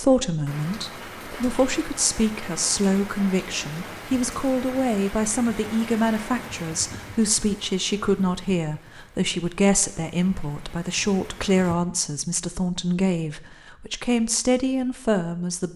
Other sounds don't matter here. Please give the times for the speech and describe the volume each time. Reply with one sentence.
The speech can be heard from 0.0 to 15.7 s, at a steady volume.